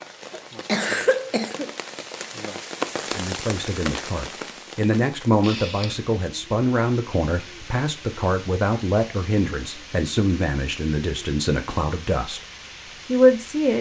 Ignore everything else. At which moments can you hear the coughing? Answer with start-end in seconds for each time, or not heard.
0.3-2.1.